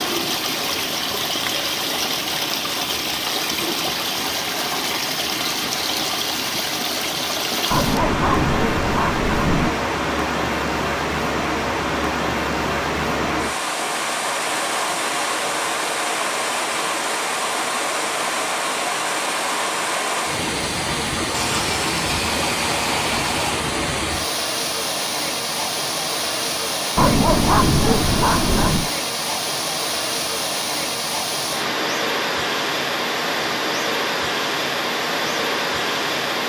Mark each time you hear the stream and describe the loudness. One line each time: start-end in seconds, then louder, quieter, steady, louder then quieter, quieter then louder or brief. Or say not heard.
0.0-36.4 steady.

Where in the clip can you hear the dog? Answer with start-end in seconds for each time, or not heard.
7.7-9.7, 26.9-28.9.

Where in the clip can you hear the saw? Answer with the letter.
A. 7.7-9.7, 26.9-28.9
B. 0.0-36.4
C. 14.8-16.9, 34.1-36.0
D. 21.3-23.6
D.